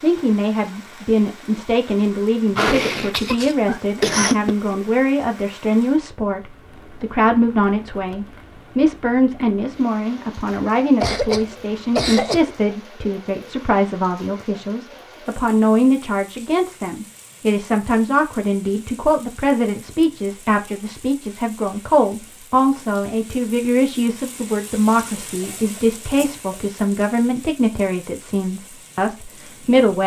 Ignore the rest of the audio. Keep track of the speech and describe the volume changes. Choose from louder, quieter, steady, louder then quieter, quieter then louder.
steady.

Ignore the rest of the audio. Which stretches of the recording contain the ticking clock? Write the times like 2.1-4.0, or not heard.
not heard.